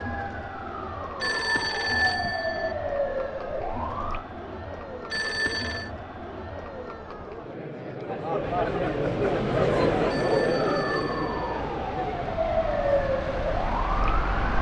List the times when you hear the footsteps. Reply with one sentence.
The footsteps can't be heard in this clip.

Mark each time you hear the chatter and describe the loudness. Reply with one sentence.
You can hear the chatter from 0.0 to 12.4 s, getting louder.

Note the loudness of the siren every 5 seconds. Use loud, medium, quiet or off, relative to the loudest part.
loud, off, loud.